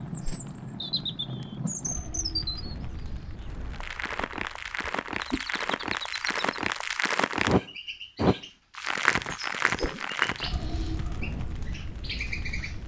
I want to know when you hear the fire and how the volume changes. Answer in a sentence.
The fire can be heard from 0.0 to 12.8 s, getting louder then quieter.